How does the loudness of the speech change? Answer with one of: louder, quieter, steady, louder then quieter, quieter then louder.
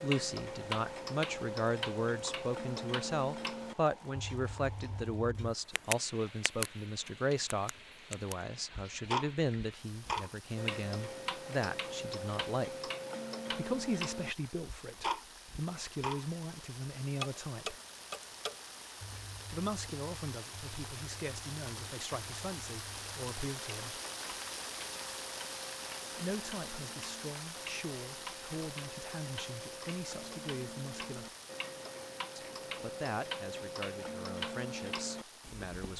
quieter.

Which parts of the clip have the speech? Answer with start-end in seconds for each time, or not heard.
0.0-12.9, 13.5-17.8, 19.5-24.0, 26.2-31.3, 32.4-35.9.